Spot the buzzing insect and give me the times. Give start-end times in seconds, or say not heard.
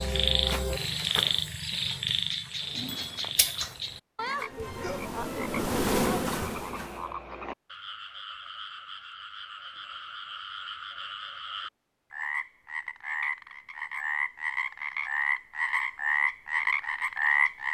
4.5-7.2.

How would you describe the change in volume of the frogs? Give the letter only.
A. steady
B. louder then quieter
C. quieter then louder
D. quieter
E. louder
C.